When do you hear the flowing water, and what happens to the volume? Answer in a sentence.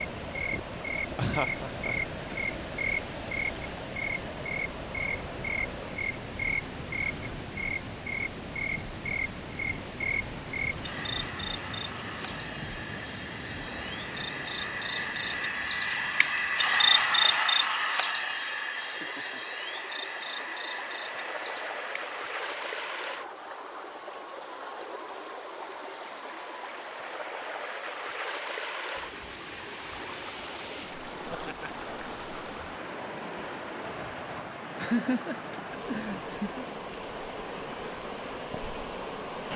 The flowing water can be heard from 0.0 to 39.5 s, at a steady volume.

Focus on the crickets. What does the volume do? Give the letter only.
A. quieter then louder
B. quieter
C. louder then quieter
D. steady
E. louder
C.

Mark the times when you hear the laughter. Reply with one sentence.
The laughter can be heard from 1.1 to 2.4 s, from 18.9 to 19.4 s and from 34.8 to 36.6 s.